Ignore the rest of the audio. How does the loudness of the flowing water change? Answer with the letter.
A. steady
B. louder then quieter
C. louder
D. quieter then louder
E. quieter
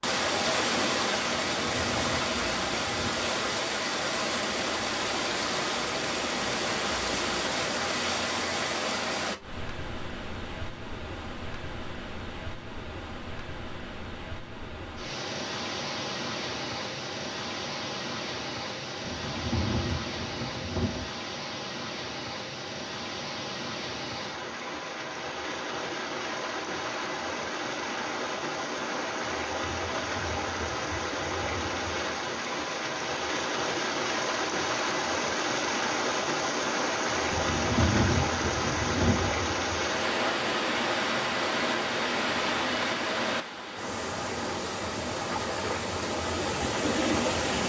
D.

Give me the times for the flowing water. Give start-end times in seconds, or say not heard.
0.0-47.6.